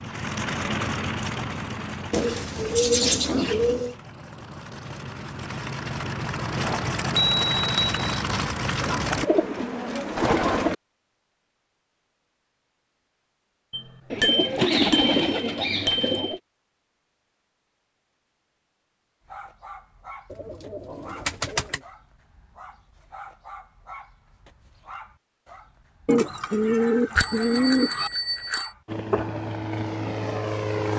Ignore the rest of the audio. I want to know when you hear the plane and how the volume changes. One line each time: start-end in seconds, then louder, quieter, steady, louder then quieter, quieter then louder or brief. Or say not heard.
0.0-9.2 quieter then louder
28.9-30.9 brief.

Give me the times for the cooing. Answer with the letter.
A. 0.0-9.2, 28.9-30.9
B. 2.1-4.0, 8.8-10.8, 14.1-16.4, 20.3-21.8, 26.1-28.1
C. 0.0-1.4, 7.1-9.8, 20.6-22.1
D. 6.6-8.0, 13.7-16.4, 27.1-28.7
B.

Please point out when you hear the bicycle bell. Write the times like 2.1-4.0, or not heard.
6.6-8.0, 13.7-16.4, 27.1-28.7.